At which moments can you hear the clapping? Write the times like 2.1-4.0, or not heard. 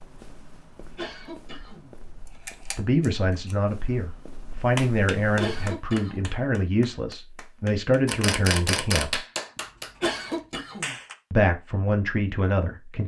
4.8-11.2.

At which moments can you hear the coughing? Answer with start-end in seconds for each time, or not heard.
0.9-2.4, 5.3-6.3, 10.0-10.9.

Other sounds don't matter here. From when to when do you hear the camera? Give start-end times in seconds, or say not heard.
2.2-3.5, 8.1-9.2.